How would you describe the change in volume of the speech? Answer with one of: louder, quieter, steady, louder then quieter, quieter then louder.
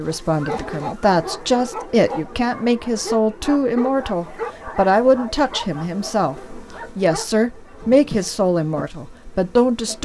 steady.